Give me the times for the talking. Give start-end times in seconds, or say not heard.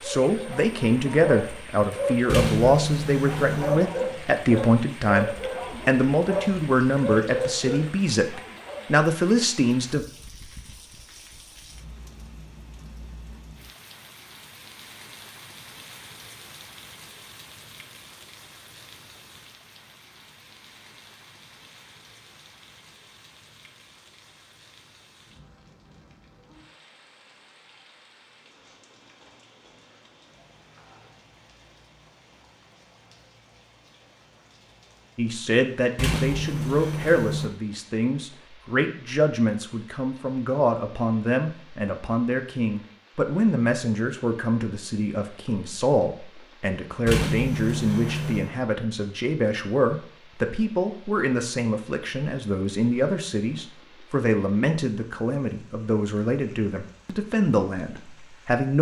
0.0-10.1, 35.1-58.7.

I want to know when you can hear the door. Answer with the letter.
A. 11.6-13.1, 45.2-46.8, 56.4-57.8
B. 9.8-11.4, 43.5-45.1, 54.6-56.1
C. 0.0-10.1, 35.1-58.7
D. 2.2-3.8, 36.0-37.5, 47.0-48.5
D.